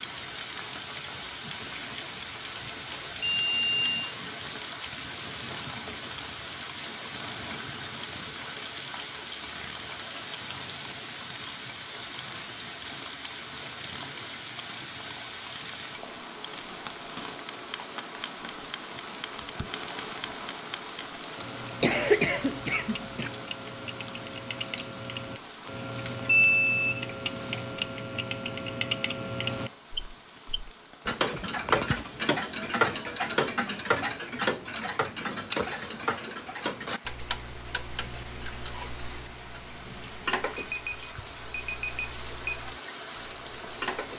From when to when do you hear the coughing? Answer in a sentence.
The coughing can be heard from 21.8 to 23.3 s.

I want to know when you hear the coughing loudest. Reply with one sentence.
The volume of the coughing peaks at 22 seconds.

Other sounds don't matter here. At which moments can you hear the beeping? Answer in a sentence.
The beeping can be heard from 2.5 to 4.2 s, from 26.2 to 27.0 s and from 40.5 to 42.5 s.